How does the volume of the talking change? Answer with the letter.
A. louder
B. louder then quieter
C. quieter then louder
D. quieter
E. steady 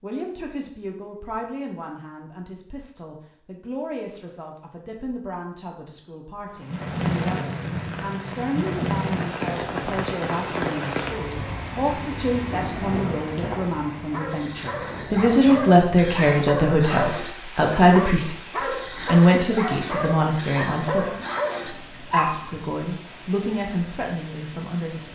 B.